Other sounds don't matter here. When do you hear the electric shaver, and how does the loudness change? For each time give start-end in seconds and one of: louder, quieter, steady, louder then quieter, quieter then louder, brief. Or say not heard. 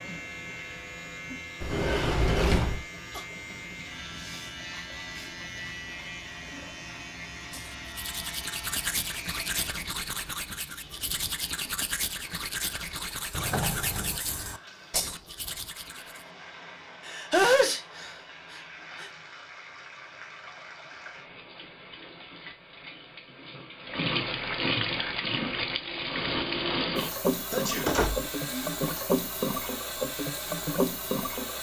0.0-9.8 steady.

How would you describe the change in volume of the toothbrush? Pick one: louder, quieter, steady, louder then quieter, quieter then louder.
steady.